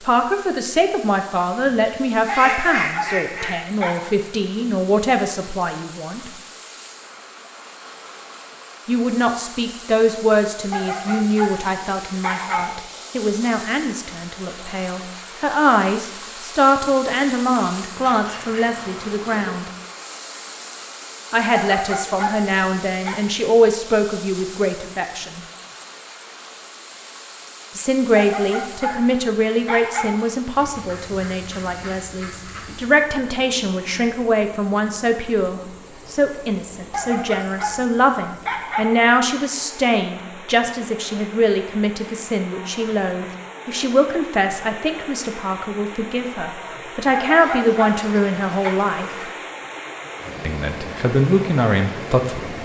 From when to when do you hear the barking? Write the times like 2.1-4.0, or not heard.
2.4-4.2, 10.7-12.8, 21.5-23.2, 28.1-30.1, 36.9-39.0, 47.1-48.8.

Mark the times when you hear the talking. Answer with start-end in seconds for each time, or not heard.
0.0-6.3, 8.8-19.6, 21.3-25.4, 27.8-49.0, 50.4-52.5.